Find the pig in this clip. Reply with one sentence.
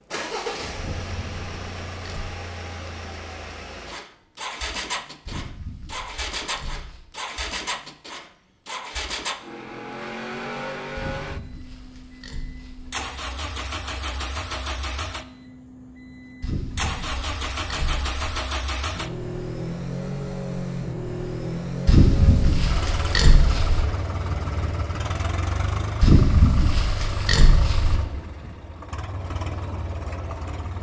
The pig can be heard from 0.8 to 2.4 s, from 5.2 to 7.1 s, from 10.9 to 12.9 s, from 16.4 to 18.1 s, from 21.9 to 23.9 s and from 26.0 to 28.0 s.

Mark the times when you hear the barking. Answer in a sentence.
The barking can't be heard in this clip.